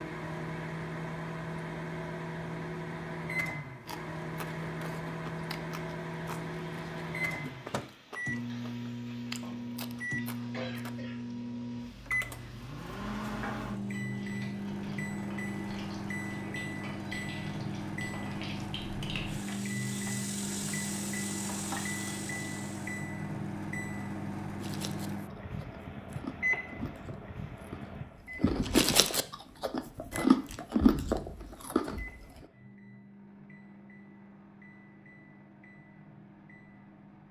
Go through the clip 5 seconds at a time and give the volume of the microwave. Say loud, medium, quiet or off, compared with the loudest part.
loud, loud, loud, loud, loud, loud, quiet, quiet.